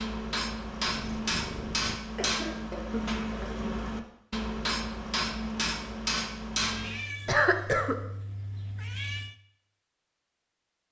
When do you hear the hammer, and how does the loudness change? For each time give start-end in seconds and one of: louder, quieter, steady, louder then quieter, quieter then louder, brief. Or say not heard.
0.0-7.0 steady.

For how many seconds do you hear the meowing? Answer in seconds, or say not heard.
4 s.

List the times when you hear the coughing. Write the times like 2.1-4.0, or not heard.
2.1-3.6, 7.2-8.0.